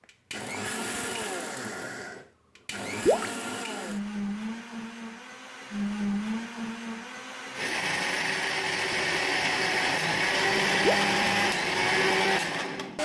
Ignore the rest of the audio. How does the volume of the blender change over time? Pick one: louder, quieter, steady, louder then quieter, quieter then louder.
louder.